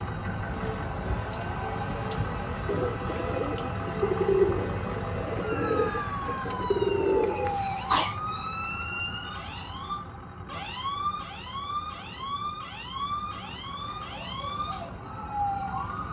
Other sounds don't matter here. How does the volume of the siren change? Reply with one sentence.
The loudness of the siren stays about the same.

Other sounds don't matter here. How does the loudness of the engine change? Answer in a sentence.
The loudness of the engine goes down.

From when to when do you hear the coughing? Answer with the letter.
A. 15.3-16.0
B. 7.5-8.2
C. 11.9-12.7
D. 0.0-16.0
B.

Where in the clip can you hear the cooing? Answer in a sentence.
You can hear the cooing from 2.6 to 8.1 s.